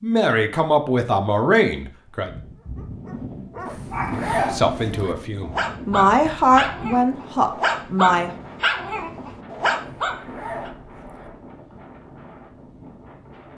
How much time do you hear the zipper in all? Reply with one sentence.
The zipper can be heard for 3 seconds in total.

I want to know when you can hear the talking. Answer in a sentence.
You can hear the talking from 0.0 to 2.3 s and from 4.3 to 8.3 s.